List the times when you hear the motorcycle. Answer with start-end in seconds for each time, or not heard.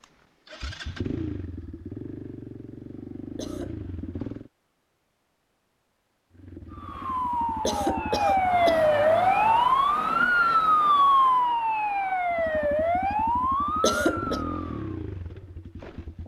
0.0-4.5, 6.3-8.8, 12.3-16.2.